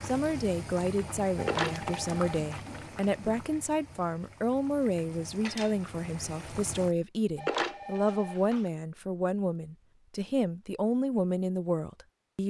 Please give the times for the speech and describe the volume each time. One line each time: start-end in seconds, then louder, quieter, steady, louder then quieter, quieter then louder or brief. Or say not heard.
0.0-12.4 steady.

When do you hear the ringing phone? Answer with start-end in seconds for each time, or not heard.
1.4-2.6, 7.3-8.7.